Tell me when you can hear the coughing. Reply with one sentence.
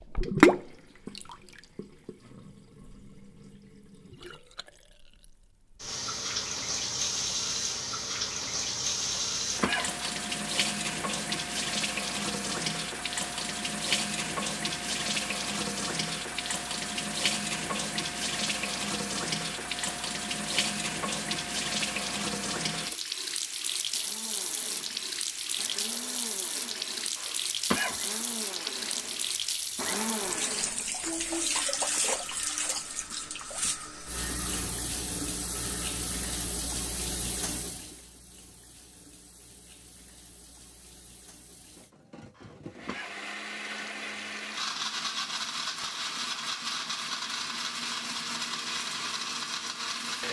You can hear the coughing from 9.1 to 10.1 s, from 27.1 to 28.1 s and from 42.4 to 43.1 s.